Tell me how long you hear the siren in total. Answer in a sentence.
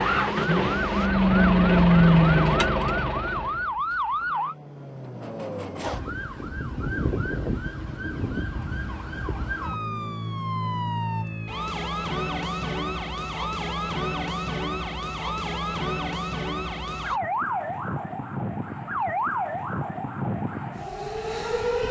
The siren can be heard for 22 seconds in total.